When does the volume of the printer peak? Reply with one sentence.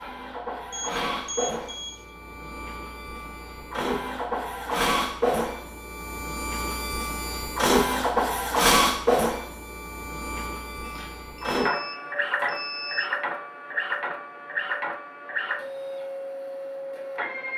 The loudest moment of the printer is at 9 seconds.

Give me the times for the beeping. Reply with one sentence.
The beeping can be heard from 0.7 to 2.1 s and from 10.8 to 13.2 s.